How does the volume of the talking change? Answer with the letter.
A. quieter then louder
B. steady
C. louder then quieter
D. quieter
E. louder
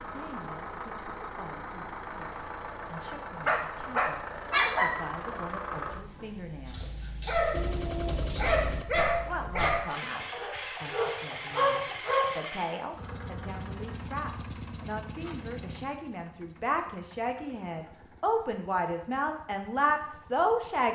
E.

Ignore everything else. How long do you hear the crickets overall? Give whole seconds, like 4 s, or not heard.
not heard.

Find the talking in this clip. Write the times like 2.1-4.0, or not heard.
0.0-7.0, 9.2-20.9.